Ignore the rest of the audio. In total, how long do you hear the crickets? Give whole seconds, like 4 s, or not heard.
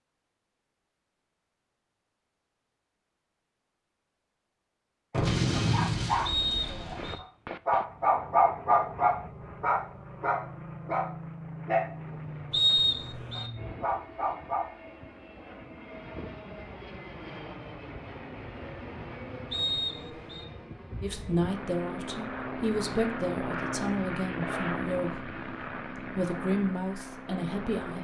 not heard.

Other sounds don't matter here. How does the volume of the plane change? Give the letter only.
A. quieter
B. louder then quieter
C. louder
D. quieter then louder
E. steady
C.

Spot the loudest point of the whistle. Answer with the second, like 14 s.
13 s.